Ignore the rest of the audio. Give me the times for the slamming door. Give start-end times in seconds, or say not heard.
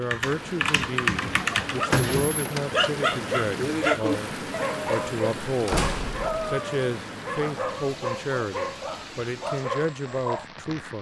1.9-2.6, 5.7-6.3.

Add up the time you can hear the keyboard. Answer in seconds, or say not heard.
2 s.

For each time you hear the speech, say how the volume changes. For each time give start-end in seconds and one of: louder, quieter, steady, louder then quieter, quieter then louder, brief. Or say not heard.
0.0-10.9 steady.